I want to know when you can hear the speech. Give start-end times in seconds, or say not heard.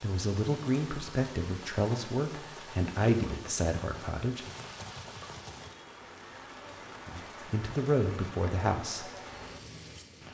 0.0-4.5, 7.0-9.1.